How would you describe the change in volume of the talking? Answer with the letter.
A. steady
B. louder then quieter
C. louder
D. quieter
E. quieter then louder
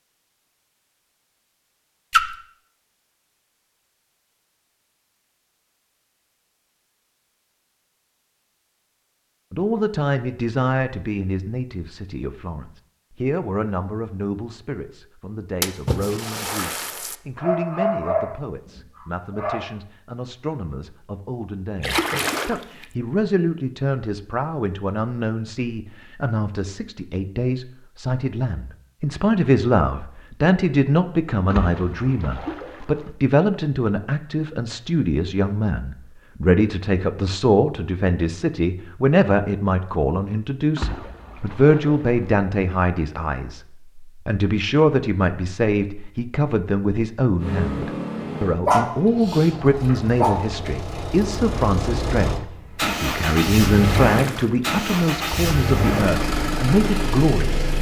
C.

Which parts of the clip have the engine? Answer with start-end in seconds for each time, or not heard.
47.4-57.7.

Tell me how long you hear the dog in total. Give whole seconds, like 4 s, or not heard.
4 s.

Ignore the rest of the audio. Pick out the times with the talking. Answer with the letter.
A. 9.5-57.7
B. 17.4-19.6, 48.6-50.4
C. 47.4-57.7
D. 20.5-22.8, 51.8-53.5
A.